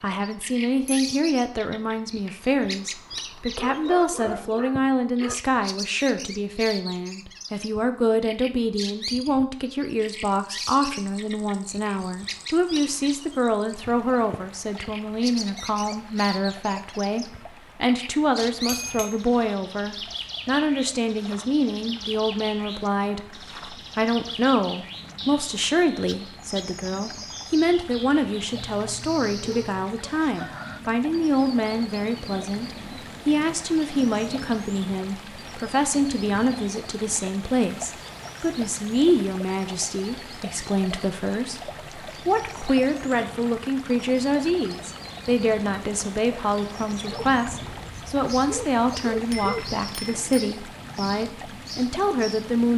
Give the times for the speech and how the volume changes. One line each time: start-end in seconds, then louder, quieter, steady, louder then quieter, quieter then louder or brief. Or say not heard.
0.0-52.7 steady.